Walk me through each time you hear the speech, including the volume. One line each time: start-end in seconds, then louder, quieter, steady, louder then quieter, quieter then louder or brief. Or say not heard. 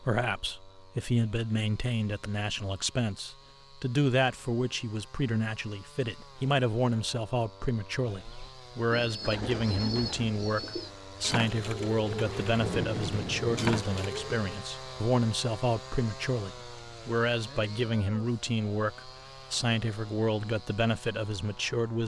0.0-22.0 steady.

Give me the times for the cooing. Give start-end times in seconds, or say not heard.
8.2-14.4.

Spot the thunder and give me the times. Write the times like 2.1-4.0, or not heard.
12.2-13.8.